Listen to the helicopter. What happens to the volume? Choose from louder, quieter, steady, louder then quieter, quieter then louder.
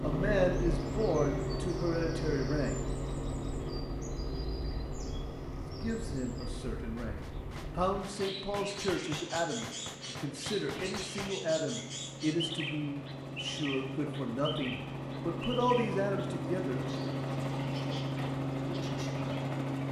quieter then louder.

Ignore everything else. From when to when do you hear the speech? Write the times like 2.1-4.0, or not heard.
0.0-2.8, 5.8-16.9.